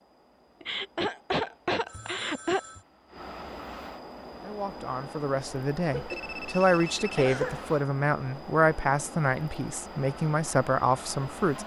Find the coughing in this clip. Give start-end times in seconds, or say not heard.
0.6-2.6, 5.9-7.7.